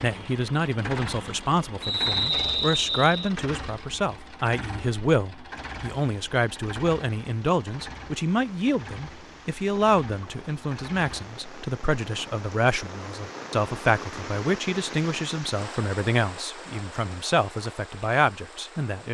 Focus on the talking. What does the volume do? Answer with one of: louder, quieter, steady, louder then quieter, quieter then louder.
steady.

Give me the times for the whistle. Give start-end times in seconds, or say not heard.
1.8-3.3.